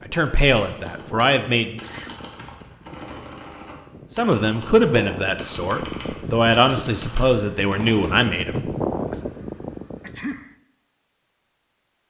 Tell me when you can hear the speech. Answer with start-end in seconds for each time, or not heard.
0.1-1.8, 4.1-9.2.